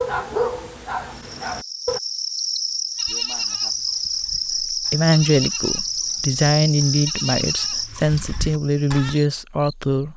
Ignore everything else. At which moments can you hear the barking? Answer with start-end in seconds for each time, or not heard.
0.0-2.0.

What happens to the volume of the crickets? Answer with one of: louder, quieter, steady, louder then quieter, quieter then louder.
quieter.